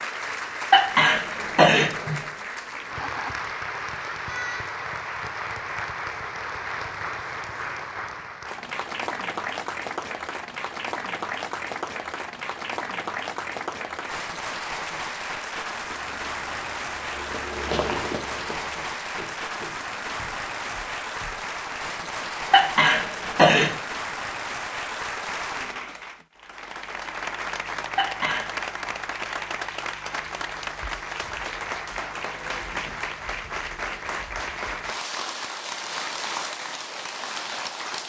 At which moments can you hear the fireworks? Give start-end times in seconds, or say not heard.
not heard.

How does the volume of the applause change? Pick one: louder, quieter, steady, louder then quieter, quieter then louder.
steady.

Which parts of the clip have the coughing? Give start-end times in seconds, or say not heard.
0.7-2.1, 22.5-23.7, 27.9-28.4.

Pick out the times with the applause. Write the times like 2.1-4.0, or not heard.
0.0-38.0.